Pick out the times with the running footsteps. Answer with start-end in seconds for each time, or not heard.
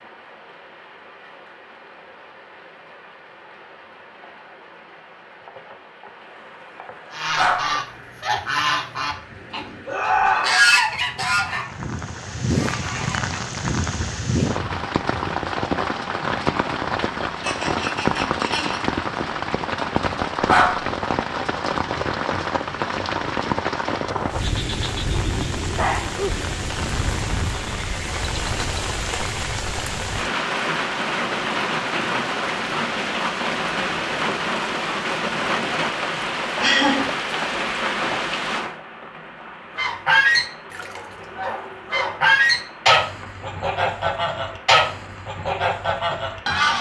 not heard.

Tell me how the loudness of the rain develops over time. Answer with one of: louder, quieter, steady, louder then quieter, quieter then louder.
louder then quieter.